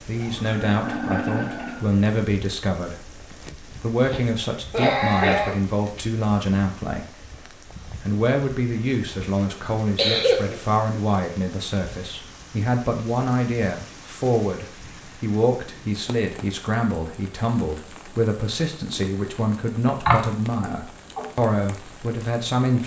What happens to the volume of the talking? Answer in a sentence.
The volume of the talking stays about the same.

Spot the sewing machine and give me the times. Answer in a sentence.
You can hear the sewing machine from 0.0 to 2.0 s.